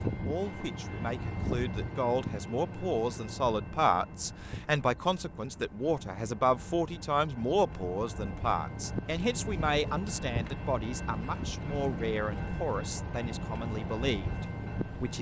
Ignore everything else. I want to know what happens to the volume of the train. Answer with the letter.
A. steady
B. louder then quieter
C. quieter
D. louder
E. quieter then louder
E.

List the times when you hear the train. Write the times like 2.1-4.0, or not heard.
0.0-15.1.